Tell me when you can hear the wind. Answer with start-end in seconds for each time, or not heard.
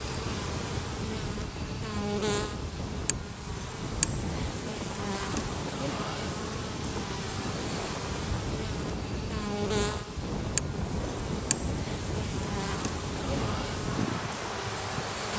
0.0-15.3.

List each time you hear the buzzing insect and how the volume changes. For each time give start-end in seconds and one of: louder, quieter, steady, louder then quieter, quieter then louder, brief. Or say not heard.
0.0-15.3 steady.